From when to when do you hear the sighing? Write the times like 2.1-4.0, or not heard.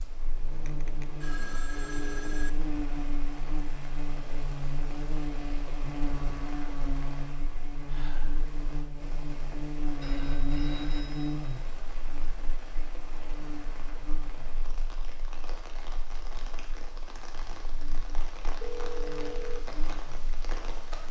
7.8-8.4.